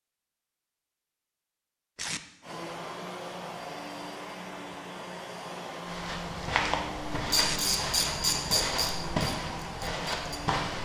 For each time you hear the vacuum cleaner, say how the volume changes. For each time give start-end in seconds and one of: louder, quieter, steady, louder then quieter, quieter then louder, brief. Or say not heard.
2.4-10.7 steady.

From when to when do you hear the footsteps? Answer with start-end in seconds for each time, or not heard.
5.8-10.7.